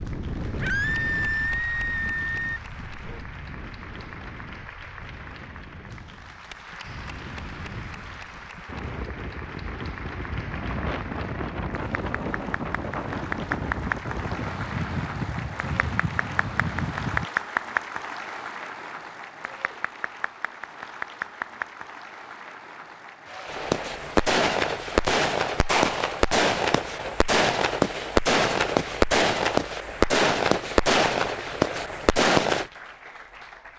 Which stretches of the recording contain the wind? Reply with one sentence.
The wind can be heard from 0.0 to 17.3 s.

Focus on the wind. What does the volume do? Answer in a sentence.
The loudness of the wind goes down, then up.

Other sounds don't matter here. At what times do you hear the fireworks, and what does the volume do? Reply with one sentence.
You can hear the fireworks from 23.4 to 32.7 s, at a steady volume.